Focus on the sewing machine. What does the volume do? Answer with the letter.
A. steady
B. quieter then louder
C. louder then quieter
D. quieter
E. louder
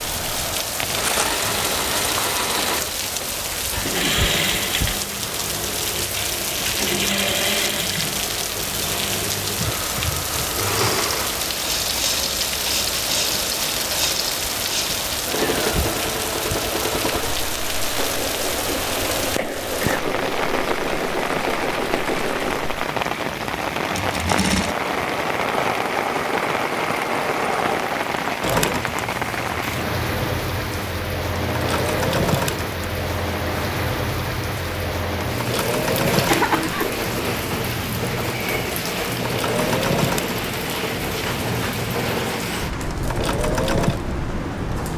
A.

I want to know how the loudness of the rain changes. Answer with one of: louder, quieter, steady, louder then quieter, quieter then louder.
steady.